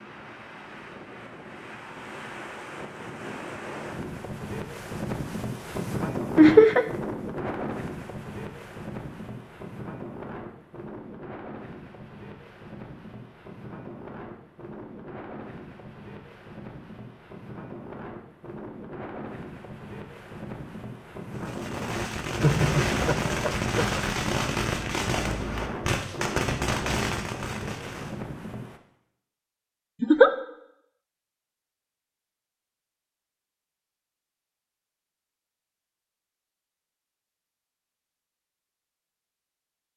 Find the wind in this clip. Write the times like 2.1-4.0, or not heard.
0.0-28.8.